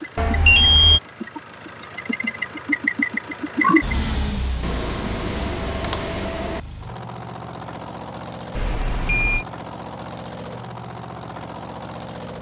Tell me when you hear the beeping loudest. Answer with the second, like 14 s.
1 s.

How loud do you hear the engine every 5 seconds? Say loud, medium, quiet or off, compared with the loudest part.
loud, medium, medium.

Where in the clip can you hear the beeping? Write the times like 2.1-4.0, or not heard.
0.1-1.0, 4.6-6.6, 8.6-9.4.